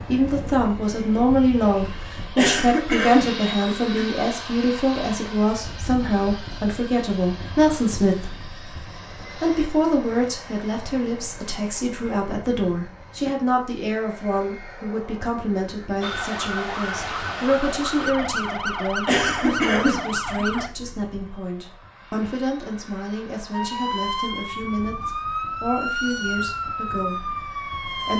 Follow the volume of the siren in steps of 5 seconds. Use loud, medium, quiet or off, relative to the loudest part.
off, off, off, loud, loud, loud.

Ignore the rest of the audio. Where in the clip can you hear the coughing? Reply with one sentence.
You can hear the coughing from 2.4 to 4.1 s and from 19.1 to 20.7 s.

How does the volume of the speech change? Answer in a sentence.
The loudness of the speech goes down.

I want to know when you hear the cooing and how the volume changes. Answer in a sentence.
The cooing can't be heard in this clip.